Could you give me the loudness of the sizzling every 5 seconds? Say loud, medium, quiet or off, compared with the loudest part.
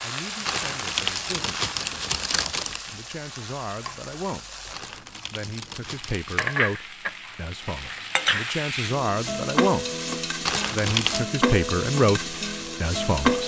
medium, loud, loud.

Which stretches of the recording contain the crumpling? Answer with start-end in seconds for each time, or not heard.
0.5-2.9, 4.7-6.6, 10.4-11.2.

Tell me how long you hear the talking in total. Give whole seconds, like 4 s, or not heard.
12 s.